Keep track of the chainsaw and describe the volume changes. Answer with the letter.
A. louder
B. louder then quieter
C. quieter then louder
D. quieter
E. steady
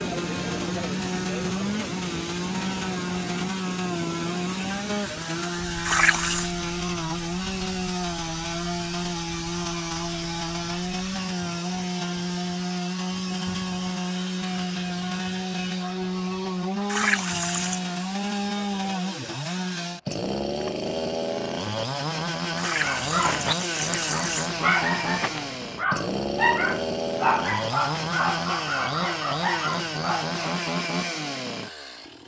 E.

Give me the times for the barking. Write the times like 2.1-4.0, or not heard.
22.6-30.6.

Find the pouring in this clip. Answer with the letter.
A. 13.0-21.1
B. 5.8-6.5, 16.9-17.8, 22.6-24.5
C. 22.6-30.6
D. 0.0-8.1
B.